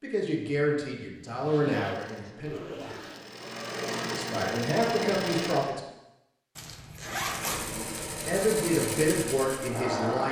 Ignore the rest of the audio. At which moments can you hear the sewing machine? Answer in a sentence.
The sewing machine can be heard from 1.9 to 5.7 s and from 7.2 to 10.2 s.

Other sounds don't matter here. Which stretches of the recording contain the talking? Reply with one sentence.
You can hear the talking from 0.0 to 2.6 s, from 4.0 to 5.8 s and from 8.2 to 10.2 s.